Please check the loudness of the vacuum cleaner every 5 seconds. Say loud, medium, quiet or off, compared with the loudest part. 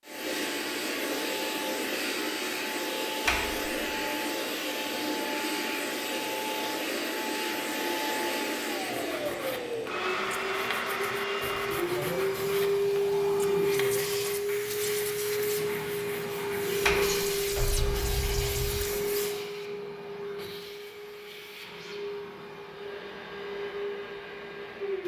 loud, loud, loud, loud, medium.